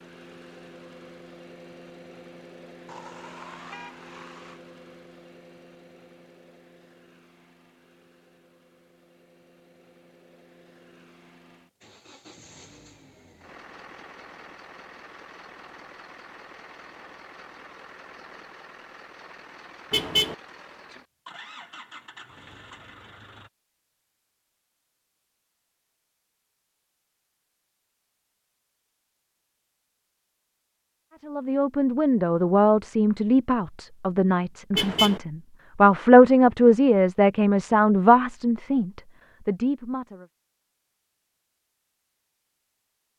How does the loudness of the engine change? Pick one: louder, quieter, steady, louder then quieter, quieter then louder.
quieter then louder.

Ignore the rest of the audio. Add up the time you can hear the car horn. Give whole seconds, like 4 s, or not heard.
3 s.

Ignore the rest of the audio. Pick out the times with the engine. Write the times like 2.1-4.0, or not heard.
0.0-23.5.